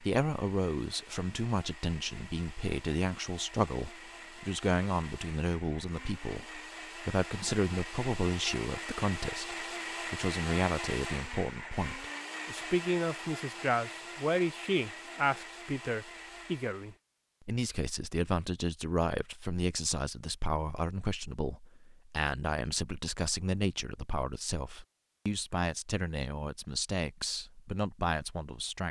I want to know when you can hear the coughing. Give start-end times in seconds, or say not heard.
not heard.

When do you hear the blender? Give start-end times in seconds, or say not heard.
0.0-17.0.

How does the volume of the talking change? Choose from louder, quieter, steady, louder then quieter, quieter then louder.
steady.